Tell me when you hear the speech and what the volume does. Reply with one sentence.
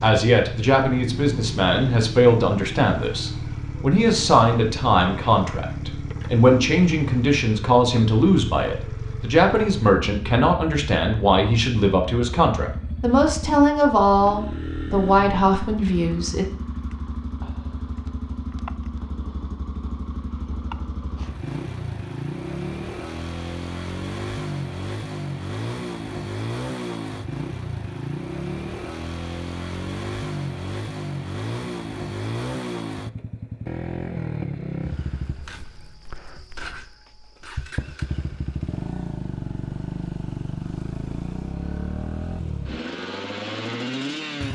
You can hear the speech from 0.0 to 16.4 s, at a steady volume.